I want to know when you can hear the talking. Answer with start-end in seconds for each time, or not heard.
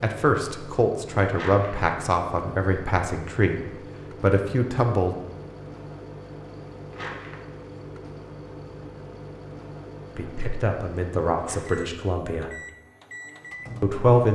0.0-5.2, 10.2-12.5, 13.8-14.3.